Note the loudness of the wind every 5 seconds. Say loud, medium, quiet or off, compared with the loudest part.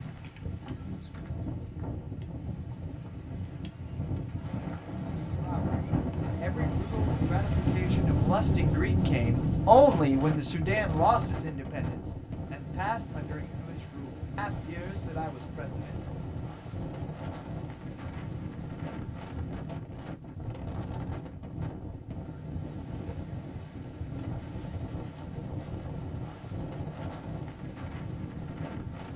medium, loud, medium, medium, medium, medium.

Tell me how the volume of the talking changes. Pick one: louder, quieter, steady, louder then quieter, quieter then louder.
louder then quieter.